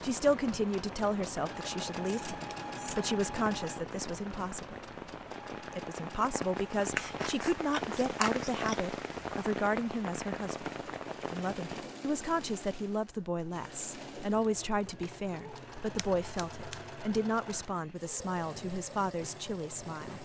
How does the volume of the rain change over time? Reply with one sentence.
The loudness of the rain goes up.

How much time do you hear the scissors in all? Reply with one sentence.
The scissors can be heard for 4 seconds in total.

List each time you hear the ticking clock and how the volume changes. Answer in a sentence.
The ticking clock can't be heard in this clip.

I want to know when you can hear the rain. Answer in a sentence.
The rain can be heard from 0.0 to 11.8 s.